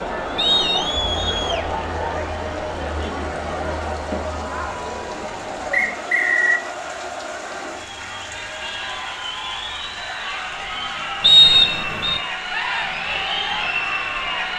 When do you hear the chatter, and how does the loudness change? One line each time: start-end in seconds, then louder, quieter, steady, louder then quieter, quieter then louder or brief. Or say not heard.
0.0-14.5 quieter then louder.